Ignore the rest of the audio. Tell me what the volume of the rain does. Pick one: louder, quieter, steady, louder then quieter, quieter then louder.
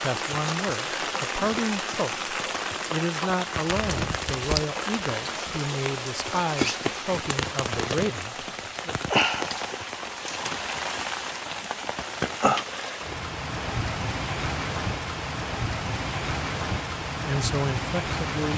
steady.